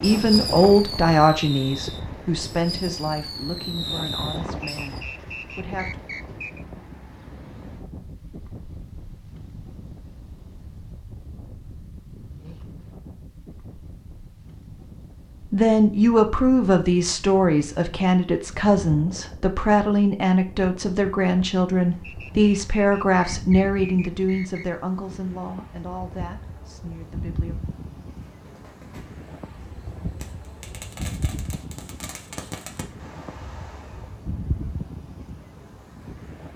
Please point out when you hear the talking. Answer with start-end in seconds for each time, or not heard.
0.0-6.0, 15.5-27.6.